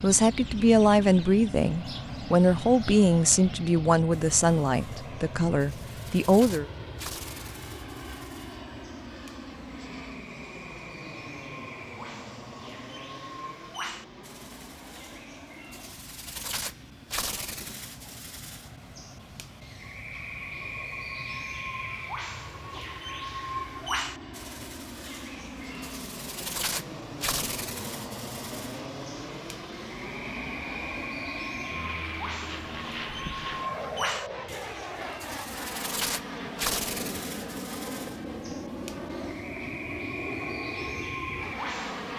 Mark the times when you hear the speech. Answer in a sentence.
You can hear the speech from 0.0 to 6.7 s.